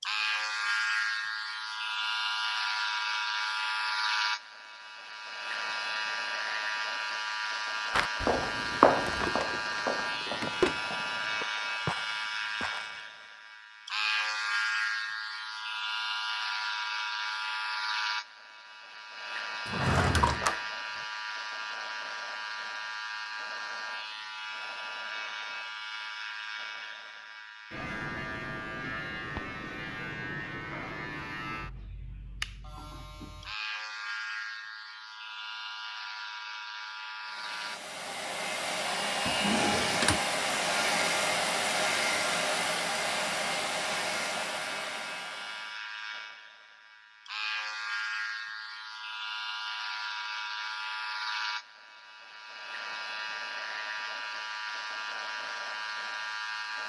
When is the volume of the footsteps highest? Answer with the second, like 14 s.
9 s.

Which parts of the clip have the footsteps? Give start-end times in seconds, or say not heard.
7.9-13.0.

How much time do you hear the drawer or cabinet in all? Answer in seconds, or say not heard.
4 s.